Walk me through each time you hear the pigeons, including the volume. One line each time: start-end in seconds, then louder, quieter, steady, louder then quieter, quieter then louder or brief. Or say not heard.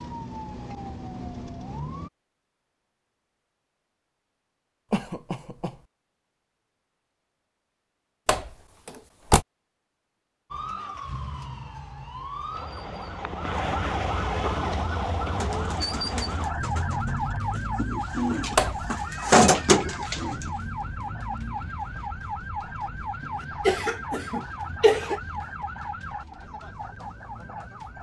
14.5-20.5 louder.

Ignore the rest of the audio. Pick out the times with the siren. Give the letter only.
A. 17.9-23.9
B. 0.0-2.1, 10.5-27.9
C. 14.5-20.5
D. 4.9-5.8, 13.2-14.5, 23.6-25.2
B.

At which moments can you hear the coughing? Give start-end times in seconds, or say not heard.
4.9-5.8, 13.2-14.5, 23.6-25.2.